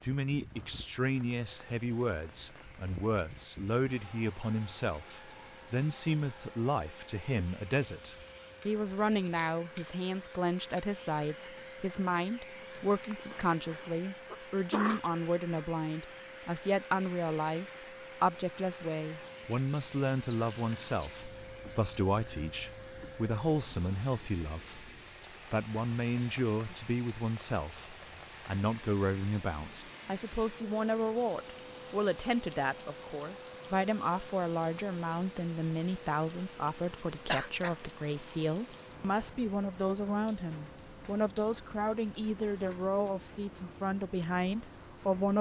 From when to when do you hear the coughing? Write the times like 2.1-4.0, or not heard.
13.1-15.0, 37.2-37.8.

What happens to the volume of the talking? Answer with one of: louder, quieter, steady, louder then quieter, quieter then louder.
steady.